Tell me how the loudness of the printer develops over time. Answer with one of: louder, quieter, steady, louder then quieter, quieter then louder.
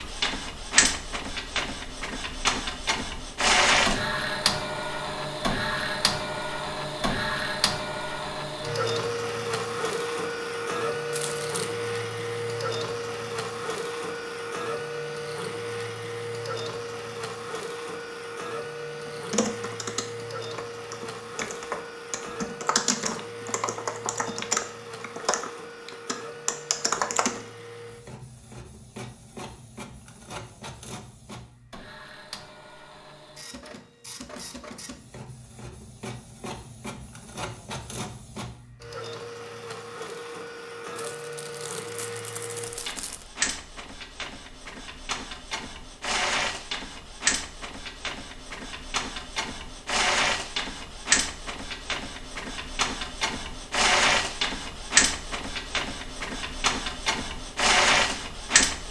quieter then louder.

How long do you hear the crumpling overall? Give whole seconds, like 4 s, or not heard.
3 s.